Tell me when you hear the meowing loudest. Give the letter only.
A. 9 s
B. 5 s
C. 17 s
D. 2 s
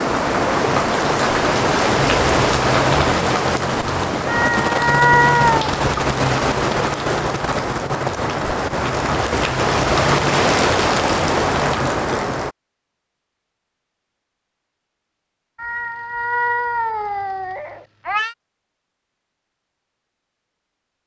B.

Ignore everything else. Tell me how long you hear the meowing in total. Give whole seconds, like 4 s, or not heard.
4 s.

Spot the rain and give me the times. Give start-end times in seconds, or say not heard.
0.0-12.6.